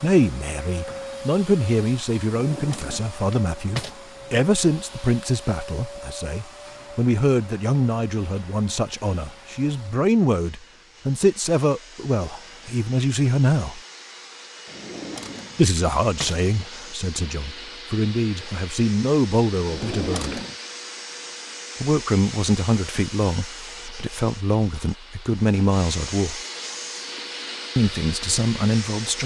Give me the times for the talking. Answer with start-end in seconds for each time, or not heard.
0.0-13.8, 15.6-20.4, 21.8-26.4, 27.8-29.2.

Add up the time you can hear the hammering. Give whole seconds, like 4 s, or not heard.
not heard.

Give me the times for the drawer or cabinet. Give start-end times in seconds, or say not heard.
2.4-4.0, 14.7-16.4, 19.6-20.6.